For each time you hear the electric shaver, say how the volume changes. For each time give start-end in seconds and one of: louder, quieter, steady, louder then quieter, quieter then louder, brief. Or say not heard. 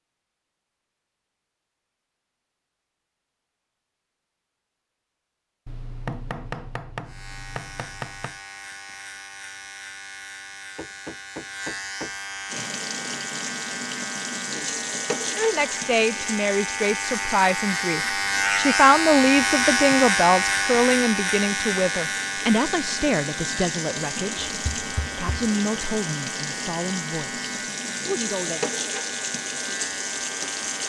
7.0-30.8 louder then quieter.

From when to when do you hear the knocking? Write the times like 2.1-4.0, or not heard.
5.7-8.3, 10.8-12.7, 24.4-25.5.